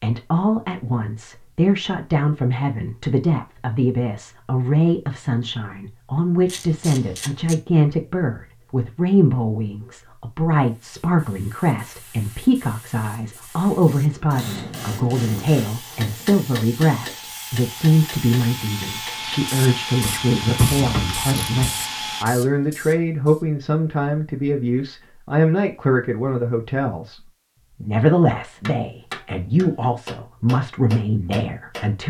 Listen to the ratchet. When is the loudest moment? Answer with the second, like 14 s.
21 s.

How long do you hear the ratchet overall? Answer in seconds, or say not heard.
3 s.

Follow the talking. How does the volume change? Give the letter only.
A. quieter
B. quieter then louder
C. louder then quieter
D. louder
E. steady
E.